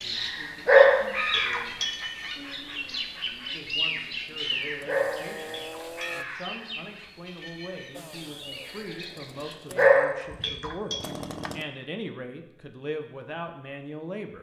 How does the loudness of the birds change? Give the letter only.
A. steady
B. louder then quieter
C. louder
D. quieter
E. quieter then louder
D.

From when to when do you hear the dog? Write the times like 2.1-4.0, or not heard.
0.7-2.0, 4.8-6.2, 9.8-11.1.